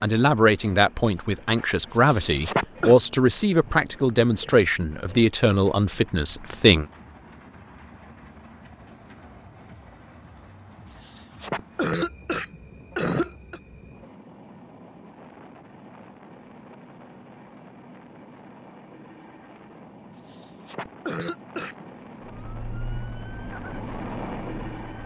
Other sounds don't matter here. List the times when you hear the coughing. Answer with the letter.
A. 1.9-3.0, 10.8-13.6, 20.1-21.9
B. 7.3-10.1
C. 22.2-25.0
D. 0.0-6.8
A.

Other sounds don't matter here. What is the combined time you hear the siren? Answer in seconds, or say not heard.
3 s.